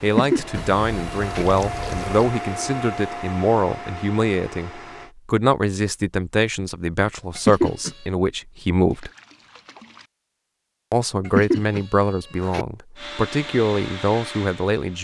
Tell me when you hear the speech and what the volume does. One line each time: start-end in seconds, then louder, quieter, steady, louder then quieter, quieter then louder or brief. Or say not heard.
0.0-9.1 steady
10.9-14.9 quieter then louder.